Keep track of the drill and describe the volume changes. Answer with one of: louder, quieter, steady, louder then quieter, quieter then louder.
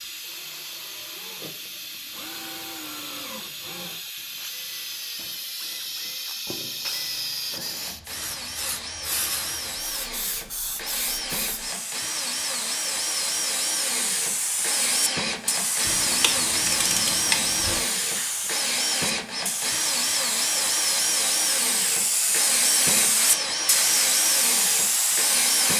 louder.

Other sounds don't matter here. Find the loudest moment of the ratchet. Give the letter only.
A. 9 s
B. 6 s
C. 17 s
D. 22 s
C.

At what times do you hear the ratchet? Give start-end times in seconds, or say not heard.
15.8-17.8.